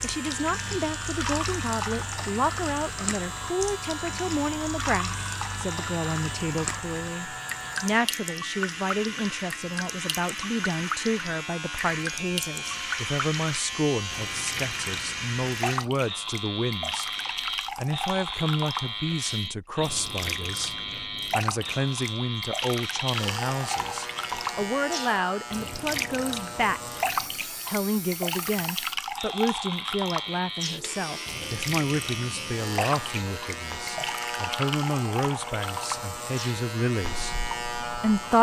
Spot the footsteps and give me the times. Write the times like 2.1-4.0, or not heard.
not heard.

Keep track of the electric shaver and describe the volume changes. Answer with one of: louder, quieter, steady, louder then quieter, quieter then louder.
steady.